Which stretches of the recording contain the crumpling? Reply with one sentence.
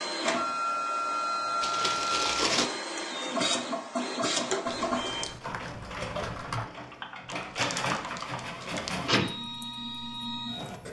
The crumpling can be heard from 1.6 to 2.7 s and from 7.3 to 9.0 s.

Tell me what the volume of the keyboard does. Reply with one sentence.
The loudness of the keyboard goes up, then down.